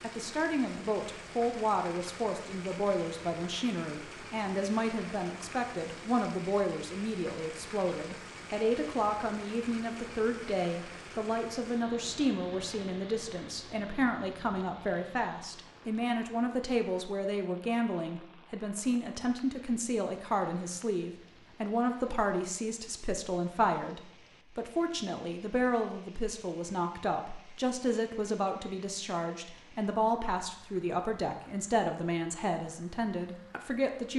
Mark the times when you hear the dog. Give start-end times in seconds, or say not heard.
not heard.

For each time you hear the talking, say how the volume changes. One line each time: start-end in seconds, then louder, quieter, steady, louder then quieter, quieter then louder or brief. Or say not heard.
0.0-34.1 steady.